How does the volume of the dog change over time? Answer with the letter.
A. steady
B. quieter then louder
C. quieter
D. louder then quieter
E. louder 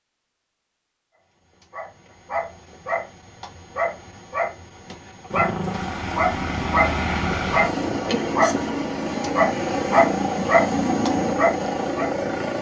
E.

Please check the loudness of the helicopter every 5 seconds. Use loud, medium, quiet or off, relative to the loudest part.
off, loud, loud.